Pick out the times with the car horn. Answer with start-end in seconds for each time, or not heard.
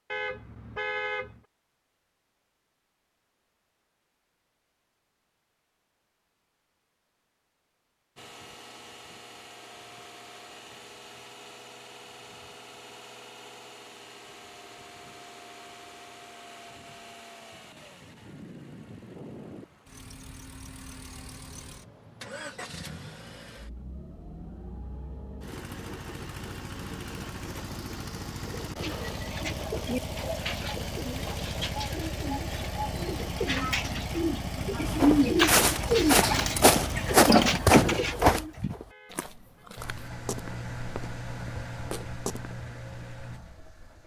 0.1-1.4, 38.9-39.7.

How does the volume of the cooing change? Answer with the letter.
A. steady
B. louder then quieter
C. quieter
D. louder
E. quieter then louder
D.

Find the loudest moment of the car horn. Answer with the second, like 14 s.
1 s.